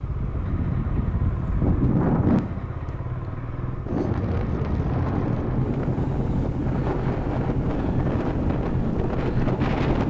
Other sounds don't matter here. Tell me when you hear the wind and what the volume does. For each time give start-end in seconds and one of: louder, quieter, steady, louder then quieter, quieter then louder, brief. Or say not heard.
0.0-10.0 steady.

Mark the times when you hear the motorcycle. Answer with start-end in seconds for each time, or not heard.
0.0-9.8.